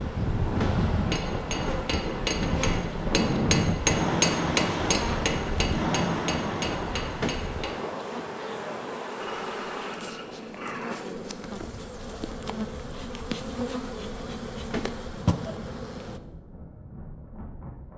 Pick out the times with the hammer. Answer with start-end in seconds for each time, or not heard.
0.9-7.8.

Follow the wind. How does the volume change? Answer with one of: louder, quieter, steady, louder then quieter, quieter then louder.
quieter.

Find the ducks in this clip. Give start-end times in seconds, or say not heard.
not heard.